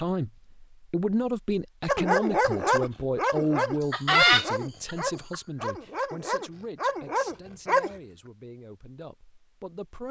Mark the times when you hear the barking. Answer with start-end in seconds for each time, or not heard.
1.9-7.9.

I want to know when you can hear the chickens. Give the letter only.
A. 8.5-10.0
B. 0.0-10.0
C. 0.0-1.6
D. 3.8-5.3
D.